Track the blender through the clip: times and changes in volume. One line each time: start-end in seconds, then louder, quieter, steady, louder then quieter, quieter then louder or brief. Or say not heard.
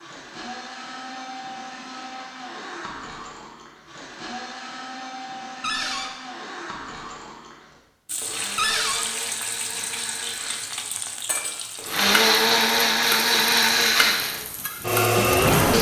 0.0-15.7 louder.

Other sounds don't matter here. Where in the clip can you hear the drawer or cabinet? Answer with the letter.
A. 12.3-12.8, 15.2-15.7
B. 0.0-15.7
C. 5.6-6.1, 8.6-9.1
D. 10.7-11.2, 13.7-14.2
C.